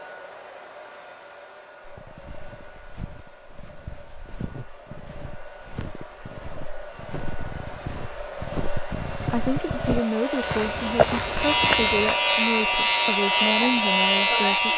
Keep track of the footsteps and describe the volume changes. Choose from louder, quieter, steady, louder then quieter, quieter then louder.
louder.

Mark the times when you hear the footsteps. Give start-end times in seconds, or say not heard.
1.8-12.2.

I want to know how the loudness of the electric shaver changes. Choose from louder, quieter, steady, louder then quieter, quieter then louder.
louder.